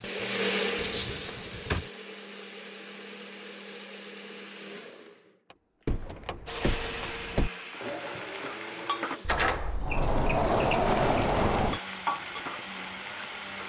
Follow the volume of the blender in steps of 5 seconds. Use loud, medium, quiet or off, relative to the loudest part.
loud, medium, medium.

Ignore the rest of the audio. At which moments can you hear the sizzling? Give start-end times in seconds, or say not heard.
0.0-1.9, 6.5-9.2, 10.8-13.6.